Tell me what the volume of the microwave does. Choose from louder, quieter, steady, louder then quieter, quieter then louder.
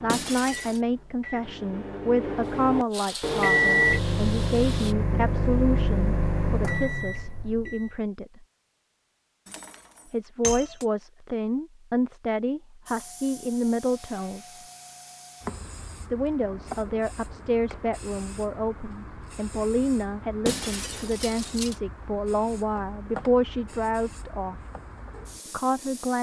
louder then quieter.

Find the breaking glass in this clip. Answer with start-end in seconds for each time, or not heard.
0.1-0.8, 9.4-10.8, 20.4-21.8.